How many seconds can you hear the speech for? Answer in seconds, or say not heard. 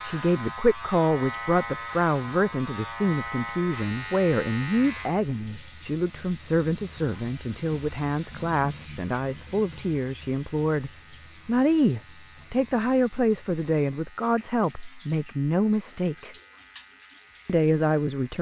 17 s.